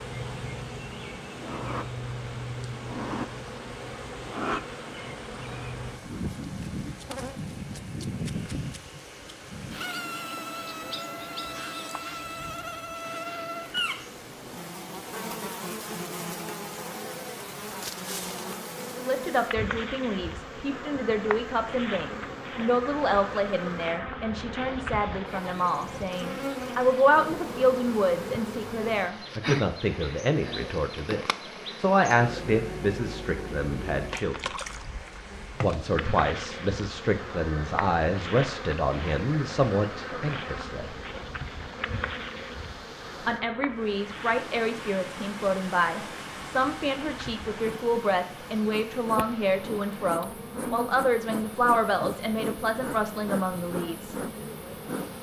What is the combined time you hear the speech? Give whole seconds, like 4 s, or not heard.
32 s.